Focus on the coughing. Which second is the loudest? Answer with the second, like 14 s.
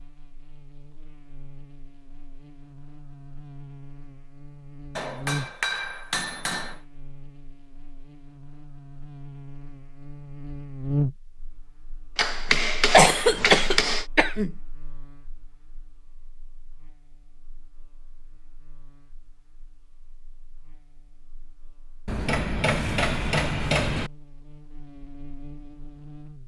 13 s.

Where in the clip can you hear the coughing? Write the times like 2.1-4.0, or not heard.
12.9-14.5.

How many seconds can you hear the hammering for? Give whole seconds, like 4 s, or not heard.
6 s.